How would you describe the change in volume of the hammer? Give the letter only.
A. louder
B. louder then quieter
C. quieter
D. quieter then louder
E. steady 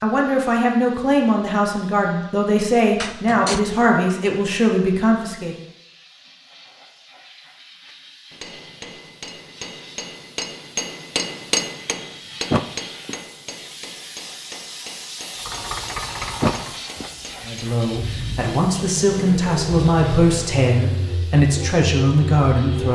B.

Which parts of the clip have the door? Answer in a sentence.
You can hear the door from 3.0 to 3.6 s, from 12.5 to 13.2 s and from 16.4 to 17.1 s.